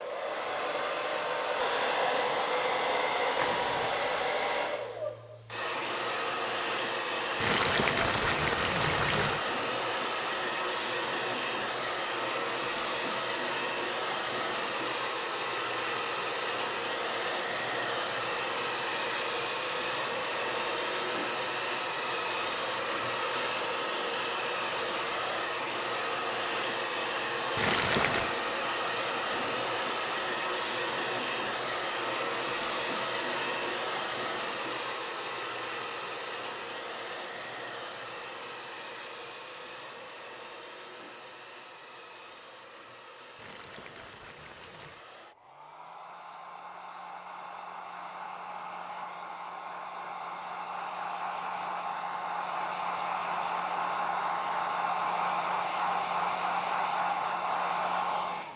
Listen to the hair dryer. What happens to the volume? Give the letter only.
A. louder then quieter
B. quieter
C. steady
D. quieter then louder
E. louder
D.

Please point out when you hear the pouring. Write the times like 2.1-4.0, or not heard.
7.4-9.4, 27.6-28.4, 43.4-45.0.